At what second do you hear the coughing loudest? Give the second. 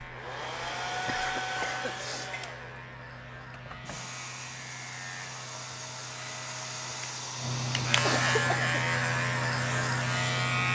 8 s.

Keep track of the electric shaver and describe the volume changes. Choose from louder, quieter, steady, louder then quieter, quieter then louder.
louder.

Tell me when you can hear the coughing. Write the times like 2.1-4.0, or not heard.
1.1-2.5, 8.0-8.8.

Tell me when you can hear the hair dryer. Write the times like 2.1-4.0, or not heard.
0.0-8.4.